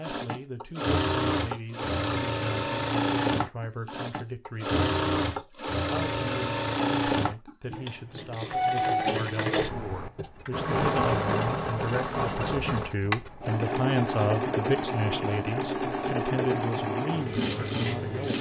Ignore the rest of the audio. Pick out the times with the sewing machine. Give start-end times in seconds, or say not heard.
0.0-18.3.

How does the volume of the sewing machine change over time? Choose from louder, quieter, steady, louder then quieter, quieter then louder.
steady.